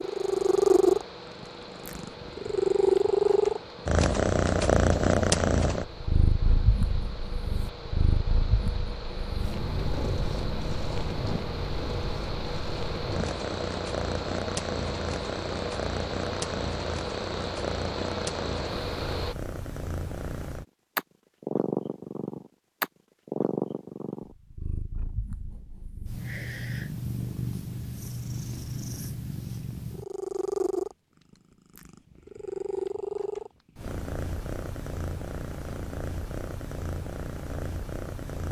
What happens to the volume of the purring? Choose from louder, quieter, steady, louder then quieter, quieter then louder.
quieter.